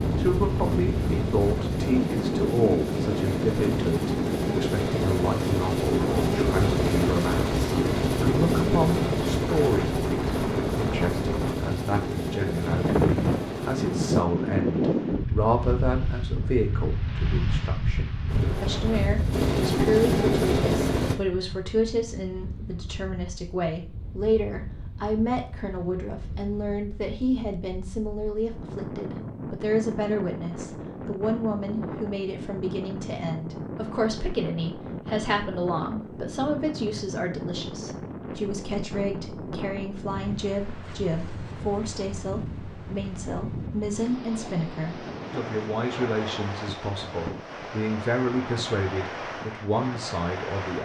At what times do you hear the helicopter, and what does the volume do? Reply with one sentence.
The helicopter can be heard from 0.0 to 14.2 s, getting louder then quieter; and briefly from 18.2 to 21.1 s.